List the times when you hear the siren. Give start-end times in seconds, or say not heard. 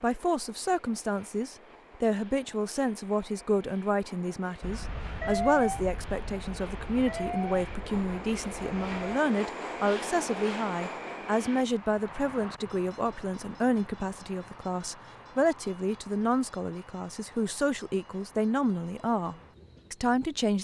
4.6-9.2.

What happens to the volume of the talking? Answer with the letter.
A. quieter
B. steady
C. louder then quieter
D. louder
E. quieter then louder
B.